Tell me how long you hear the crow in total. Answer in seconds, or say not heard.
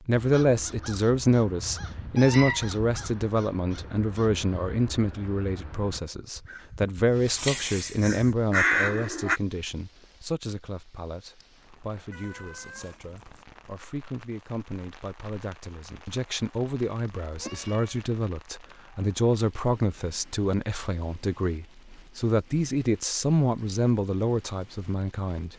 9 s.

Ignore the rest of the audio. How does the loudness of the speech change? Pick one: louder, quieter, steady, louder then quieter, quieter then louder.
quieter then louder.